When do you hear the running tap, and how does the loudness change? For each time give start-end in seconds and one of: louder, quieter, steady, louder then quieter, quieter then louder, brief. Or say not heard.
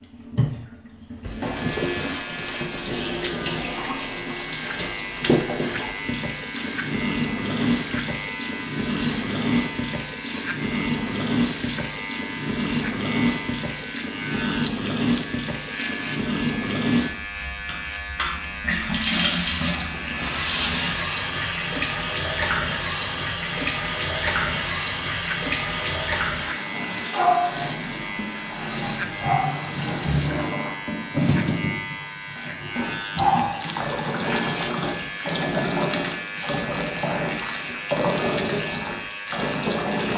0.0-40.1 steady.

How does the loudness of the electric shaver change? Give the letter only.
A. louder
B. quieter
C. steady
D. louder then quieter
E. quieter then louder
C.